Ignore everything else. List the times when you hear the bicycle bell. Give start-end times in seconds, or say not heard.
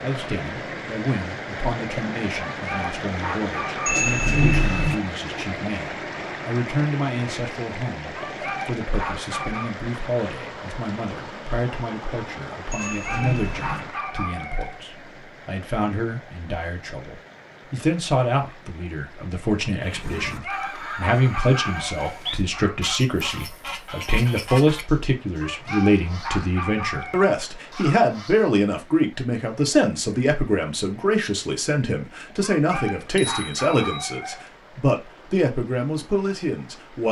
3.9-5.0, 12.7-13.8, 33.0-34.0.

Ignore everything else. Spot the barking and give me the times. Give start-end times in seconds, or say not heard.
2.5-4.0, 8.2-9.8, 12.8-14.8, 20.1-22.9, 25.4-28.1, 32.4-34.5.